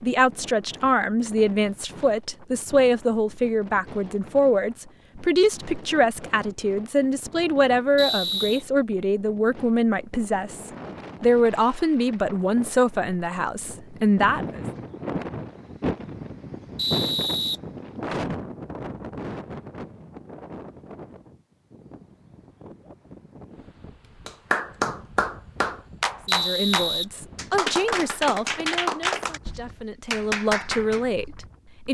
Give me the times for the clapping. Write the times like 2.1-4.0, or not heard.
24.2-31.0.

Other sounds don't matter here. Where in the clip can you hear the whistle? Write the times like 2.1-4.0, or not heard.
8.0-8.7, 16.8-17.6, 26.2-27.8.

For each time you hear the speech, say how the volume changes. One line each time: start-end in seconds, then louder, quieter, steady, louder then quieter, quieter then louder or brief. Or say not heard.
0.0-14.7 steady
26.2-31.8 quieter then louder.